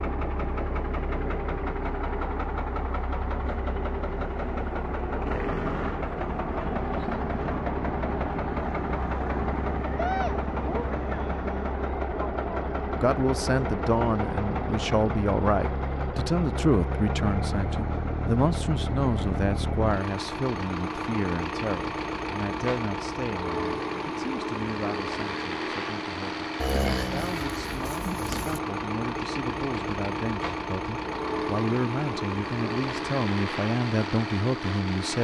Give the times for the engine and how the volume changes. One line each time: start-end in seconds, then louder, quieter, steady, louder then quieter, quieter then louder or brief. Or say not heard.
0.0-35.2 steady.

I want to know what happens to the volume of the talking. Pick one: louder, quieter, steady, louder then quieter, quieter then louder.
quieter then louder.